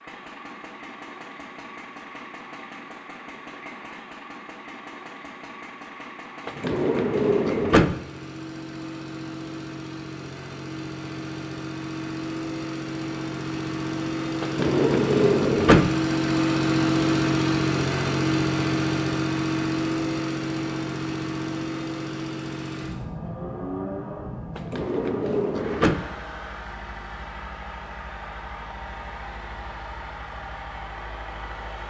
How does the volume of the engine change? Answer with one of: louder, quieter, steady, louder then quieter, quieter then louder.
louder then quieter.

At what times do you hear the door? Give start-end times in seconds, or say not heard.
6.5-8.0, 14.4-15.9, 24.6-26.1.